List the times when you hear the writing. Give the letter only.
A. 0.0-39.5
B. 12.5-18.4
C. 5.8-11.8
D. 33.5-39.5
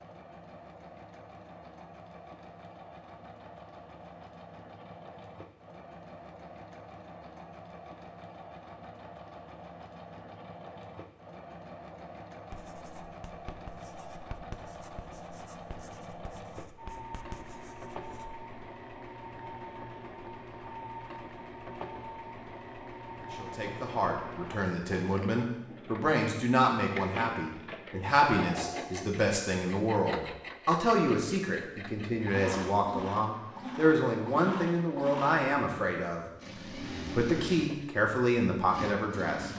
B.